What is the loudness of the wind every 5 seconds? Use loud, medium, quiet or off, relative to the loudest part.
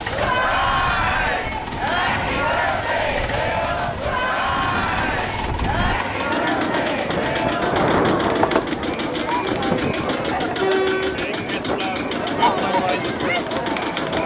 medium, loud, medium.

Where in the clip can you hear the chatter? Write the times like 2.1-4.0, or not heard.
0.1-14.2.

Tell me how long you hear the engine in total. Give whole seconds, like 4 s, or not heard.
14 s.